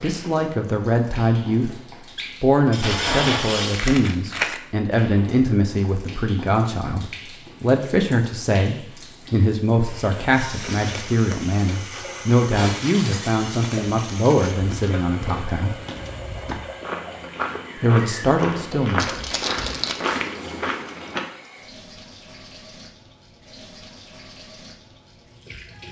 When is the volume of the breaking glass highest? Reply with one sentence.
The loudest moment of the breaking glass is at 3 seconds.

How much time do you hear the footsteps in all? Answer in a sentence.
The footsteps can be heard for 11 seconds in total.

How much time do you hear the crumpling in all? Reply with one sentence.
You can hear the crumpling for 2 seconds altogether.